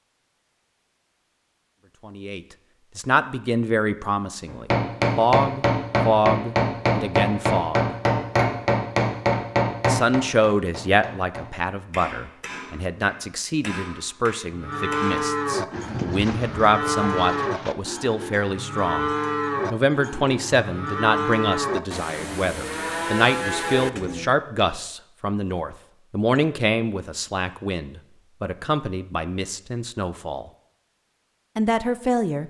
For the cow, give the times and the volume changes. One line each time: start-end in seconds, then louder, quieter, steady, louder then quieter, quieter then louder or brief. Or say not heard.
14.5-24.4 steady.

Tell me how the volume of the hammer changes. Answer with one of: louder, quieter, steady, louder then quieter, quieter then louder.
quieter.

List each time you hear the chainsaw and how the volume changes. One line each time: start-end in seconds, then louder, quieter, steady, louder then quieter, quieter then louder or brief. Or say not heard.
not heard.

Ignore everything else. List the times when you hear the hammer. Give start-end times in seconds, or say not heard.
4.5-15.3.